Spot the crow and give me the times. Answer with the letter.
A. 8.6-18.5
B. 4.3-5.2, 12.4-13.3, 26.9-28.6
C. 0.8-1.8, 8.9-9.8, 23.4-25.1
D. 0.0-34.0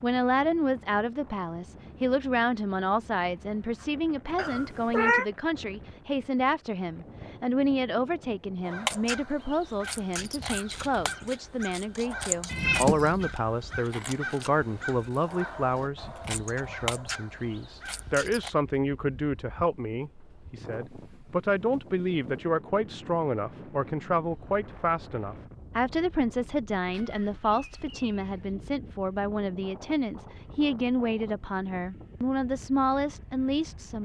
A.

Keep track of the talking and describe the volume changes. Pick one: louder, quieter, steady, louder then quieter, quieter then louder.
steady.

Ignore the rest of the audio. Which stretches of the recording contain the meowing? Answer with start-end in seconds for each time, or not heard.
4.3-5.2, 12.4-13.3, 26.9-28.6.